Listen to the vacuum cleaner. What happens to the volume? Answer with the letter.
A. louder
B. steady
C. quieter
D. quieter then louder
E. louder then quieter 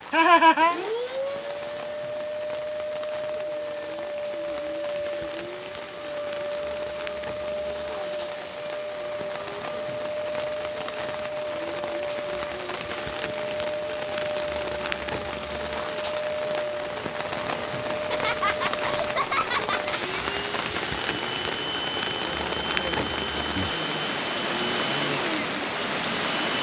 B.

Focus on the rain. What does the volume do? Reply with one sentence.
The volume of the rain goes up.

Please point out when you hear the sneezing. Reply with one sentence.
The sneezing can't be heard in this clip.